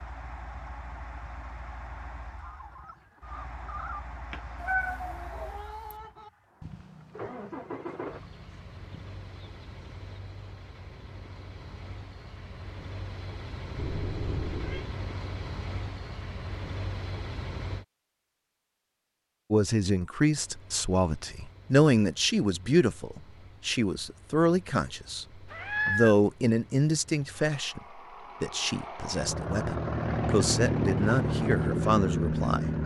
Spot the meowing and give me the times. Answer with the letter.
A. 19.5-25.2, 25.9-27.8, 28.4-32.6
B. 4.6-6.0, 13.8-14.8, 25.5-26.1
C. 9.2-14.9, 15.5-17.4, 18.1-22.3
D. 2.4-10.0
B.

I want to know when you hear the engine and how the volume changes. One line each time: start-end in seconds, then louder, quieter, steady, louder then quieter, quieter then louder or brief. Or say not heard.
0.0-17.9 louder
20.4-32.8 louder.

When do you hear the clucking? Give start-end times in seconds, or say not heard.
2.4-10.0.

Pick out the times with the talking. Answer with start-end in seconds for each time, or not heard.
19.5-25.2, 25.9-27.8, 28.4-32.6.